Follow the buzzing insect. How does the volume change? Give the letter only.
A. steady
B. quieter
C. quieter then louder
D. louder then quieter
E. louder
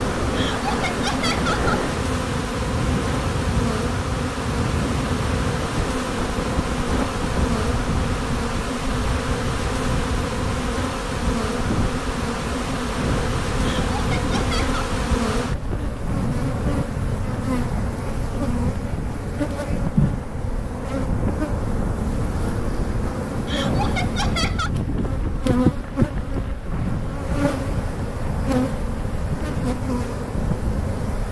A.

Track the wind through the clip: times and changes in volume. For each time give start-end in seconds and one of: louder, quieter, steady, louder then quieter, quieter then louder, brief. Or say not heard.
0.0-31.2 steady.